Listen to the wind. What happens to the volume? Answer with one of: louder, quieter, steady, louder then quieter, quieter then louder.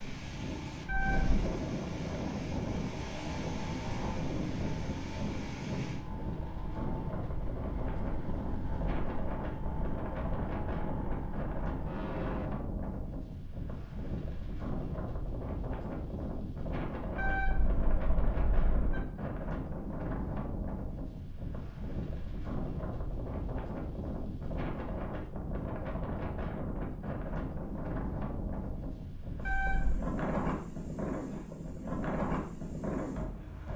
steady.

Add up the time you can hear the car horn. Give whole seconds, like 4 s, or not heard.
3 s.